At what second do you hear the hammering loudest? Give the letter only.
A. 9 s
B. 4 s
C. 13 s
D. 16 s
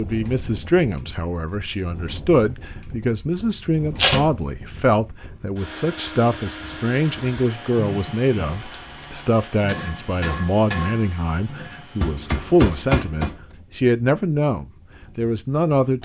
C.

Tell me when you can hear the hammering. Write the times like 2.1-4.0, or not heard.
9.7-13.3.